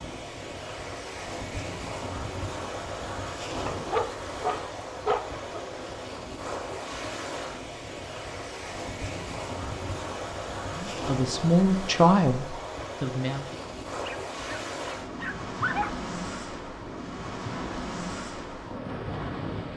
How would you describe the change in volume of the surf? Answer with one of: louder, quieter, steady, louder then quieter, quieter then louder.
steady.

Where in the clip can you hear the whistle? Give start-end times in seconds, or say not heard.
not heard.